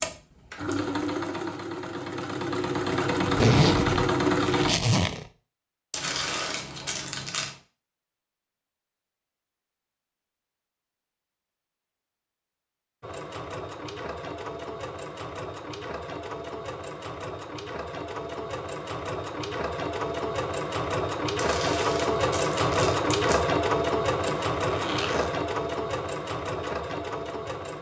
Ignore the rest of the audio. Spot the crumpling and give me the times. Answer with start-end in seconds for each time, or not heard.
5.9-7.5, 21.4-23.4.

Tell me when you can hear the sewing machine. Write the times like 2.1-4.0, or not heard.
0.0-4.7, 13.0-27.7.